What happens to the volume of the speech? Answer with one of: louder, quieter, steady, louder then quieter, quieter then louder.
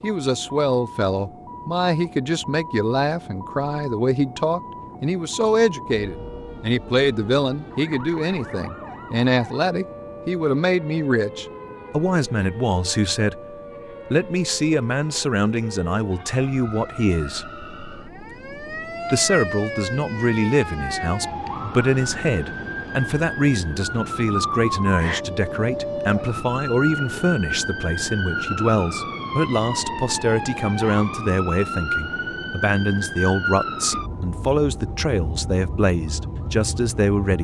steady.